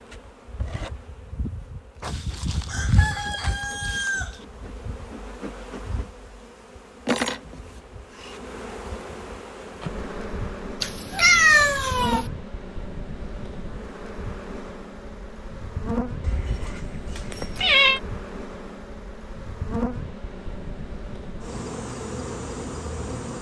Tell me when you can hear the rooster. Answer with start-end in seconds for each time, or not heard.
2.0-4.5.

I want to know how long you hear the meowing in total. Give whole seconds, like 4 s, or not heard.
4 s.